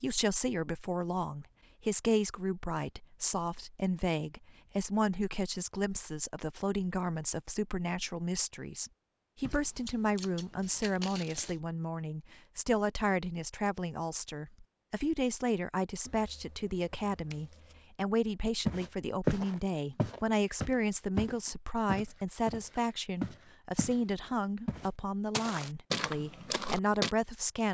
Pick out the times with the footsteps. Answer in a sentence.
The footsteps can be heard from 18.6 to 24.0 s and from 24.6 to 27.1 s.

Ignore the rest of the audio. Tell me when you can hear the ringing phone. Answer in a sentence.
You can't hear the ringing phone here.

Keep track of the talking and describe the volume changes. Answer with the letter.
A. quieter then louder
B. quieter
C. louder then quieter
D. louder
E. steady
E.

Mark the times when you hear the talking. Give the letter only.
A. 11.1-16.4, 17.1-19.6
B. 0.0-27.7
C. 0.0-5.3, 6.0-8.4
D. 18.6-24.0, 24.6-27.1
B.